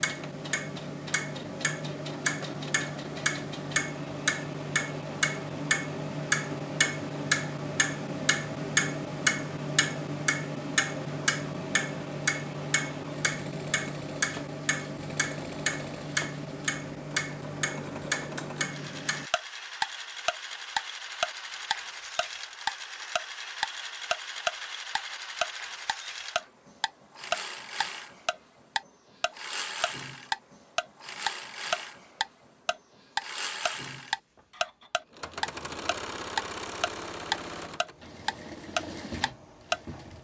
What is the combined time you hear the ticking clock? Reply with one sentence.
You can hear the ticking clock for 40 seconds altogether.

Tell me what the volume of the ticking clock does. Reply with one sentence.
The volume of the ticking clock stays about the same.